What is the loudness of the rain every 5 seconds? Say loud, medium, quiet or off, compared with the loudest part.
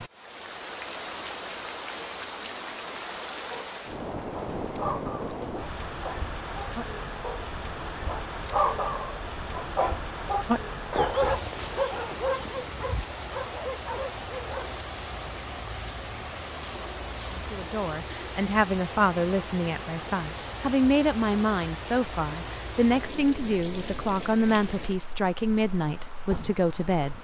loud, loud, loud, loud, loud, medium.